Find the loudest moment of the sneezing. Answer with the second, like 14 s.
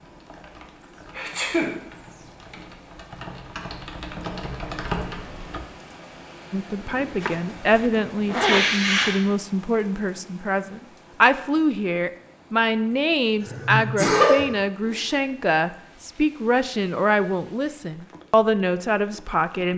14 s.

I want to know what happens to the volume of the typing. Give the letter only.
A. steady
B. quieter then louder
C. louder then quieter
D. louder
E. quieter
D.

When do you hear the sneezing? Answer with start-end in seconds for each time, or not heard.
1.1-1.8, 8.3-9.2, 13.4-15.2.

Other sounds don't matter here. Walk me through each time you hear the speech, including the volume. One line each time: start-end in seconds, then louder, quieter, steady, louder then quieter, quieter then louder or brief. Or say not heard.
6.5-19.7 steady.